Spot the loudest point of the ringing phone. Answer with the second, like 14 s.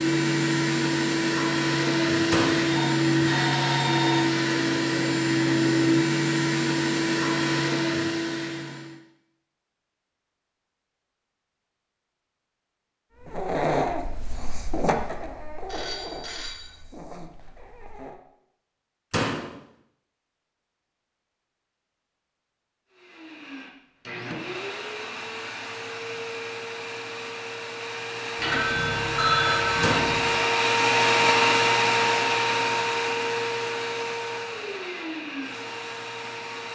29 s.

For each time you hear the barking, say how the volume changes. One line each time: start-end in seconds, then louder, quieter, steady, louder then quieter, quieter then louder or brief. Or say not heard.
13.2-18.2 quieter.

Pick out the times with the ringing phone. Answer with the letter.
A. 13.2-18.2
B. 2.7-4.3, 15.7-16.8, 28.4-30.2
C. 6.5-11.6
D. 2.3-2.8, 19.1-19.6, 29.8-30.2
B.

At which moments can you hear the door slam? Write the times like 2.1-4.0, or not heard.
2.3-2.8, 19.1-19.6, 29.8-30.2.